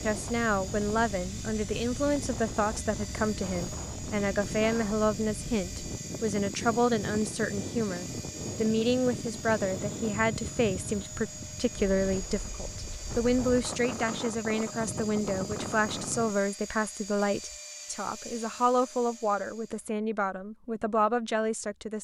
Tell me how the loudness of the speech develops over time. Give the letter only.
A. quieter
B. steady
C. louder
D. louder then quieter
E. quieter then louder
B.